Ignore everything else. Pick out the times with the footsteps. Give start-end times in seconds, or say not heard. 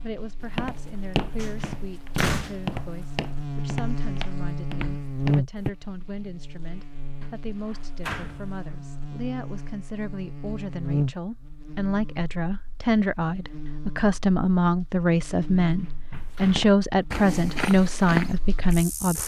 0.4-5.7, 16.1-19.2.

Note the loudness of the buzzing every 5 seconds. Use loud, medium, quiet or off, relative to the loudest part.
loud, loud, loud, medium.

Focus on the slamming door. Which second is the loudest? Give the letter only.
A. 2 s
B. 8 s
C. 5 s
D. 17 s
A.